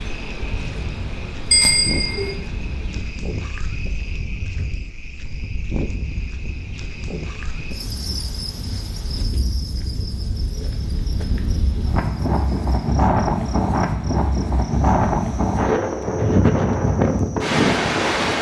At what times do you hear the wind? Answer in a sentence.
You can hear the wind from 0.0 to 18.3 s.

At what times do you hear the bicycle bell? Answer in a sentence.
You can hear the bicycle bell from 1.5 to 2.4 s.